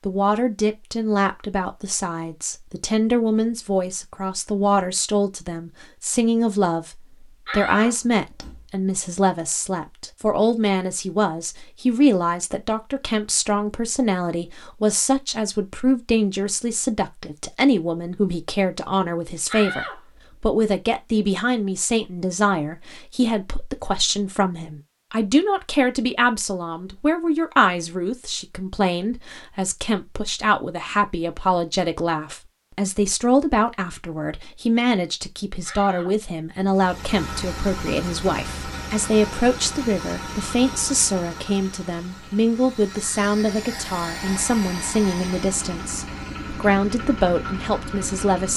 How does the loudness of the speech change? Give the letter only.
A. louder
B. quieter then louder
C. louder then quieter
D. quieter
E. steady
E.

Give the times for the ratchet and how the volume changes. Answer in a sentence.
The ratchet can't be heard in this clip.